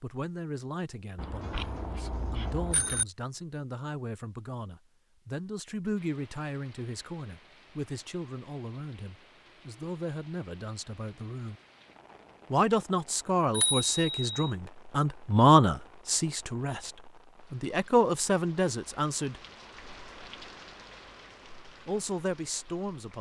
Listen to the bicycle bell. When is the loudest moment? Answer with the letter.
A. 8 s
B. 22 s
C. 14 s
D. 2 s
C.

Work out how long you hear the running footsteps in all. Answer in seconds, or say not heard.
not heard.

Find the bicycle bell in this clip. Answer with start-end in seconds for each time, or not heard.
1.1-3.0, 13.5-14.5.